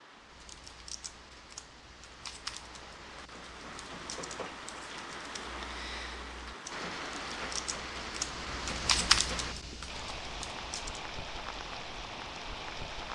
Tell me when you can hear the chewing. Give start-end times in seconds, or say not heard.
not heard.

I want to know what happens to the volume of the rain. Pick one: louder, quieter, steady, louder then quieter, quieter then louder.
louder.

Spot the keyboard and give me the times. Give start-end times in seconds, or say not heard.
0.2-11.1.